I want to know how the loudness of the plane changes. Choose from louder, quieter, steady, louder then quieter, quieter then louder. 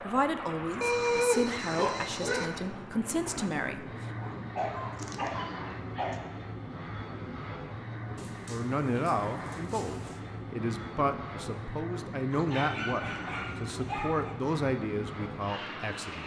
steady.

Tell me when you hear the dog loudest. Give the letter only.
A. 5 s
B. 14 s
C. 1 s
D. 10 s
C.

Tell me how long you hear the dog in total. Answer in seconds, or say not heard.
8 s.